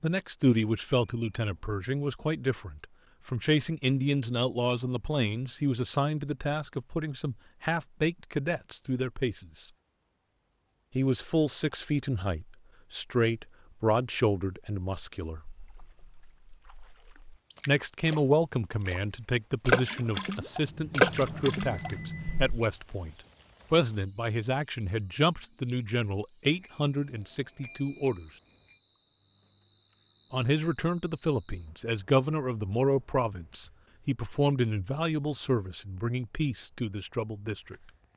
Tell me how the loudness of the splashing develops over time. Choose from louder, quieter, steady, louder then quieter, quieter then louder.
louder.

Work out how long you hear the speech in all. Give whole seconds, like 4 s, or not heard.
32 s.